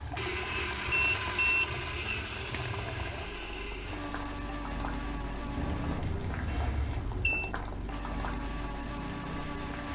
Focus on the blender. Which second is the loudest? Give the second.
1 s.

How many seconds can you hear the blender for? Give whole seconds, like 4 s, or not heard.
8 s.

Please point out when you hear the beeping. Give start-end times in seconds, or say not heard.
0.9-2.1, 5.5-7.5.